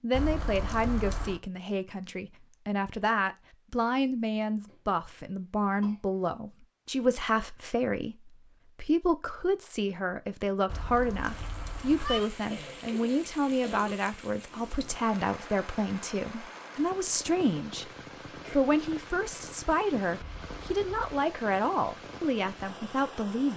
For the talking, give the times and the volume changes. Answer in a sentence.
The talking can be heard from 0.0 to 23.5 s, at a steady volume.